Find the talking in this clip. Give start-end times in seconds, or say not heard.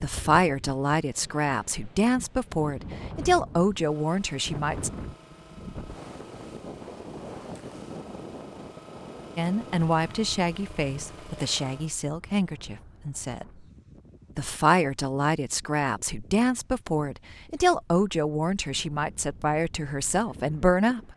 0.0-4.9, 9.3-13.4, 14.3-21.0.